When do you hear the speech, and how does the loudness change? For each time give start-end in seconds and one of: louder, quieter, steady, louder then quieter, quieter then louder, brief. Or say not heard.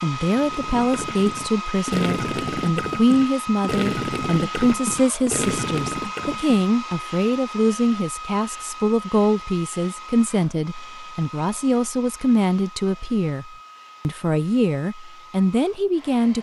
0.0-16.3 steady.